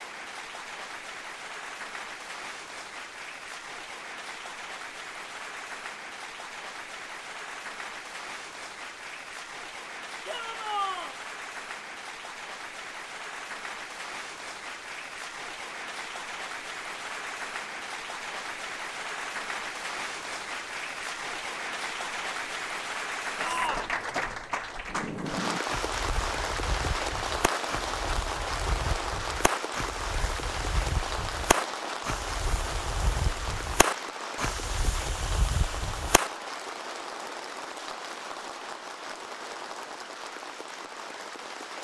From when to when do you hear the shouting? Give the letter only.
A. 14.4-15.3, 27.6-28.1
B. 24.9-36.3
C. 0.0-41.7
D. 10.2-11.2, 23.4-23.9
D.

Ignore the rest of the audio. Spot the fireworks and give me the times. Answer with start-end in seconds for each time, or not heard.
24.9-36.3.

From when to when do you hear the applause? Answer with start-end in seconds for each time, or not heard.
0.0-41.7.